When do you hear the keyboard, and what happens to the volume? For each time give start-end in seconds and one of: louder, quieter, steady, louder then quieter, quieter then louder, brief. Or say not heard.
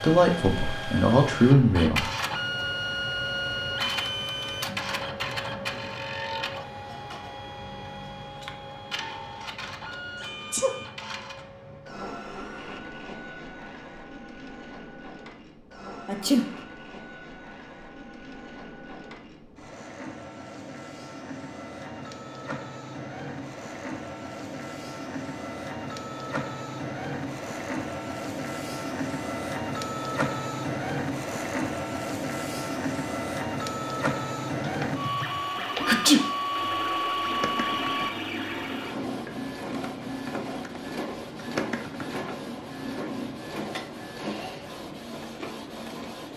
34.6-43.4 steady.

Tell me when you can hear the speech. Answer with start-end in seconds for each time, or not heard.
0.0-2.0.